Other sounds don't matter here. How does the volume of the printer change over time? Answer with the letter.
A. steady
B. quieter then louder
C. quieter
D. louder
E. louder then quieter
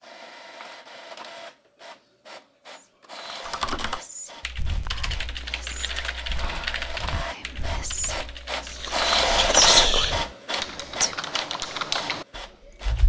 E.